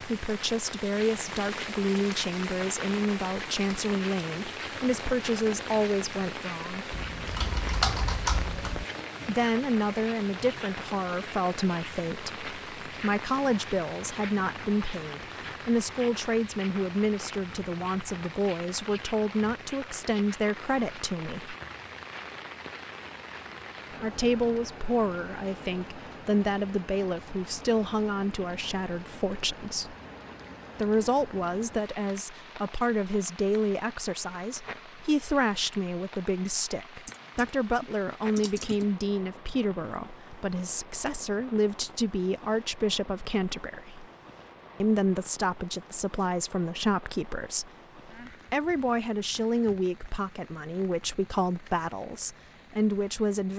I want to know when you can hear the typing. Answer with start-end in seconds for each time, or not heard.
6.9-8.8, 37.0-38.9.